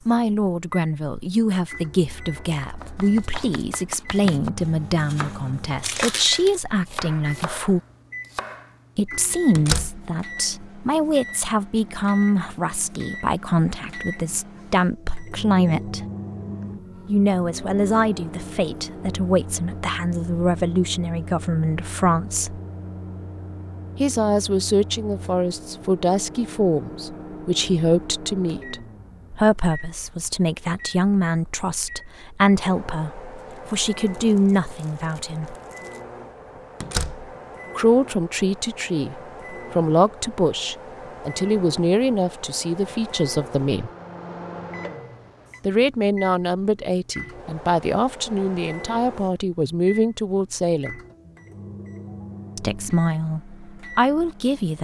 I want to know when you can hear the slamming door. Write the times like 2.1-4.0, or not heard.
9.6-10.1, 36.8-37.4.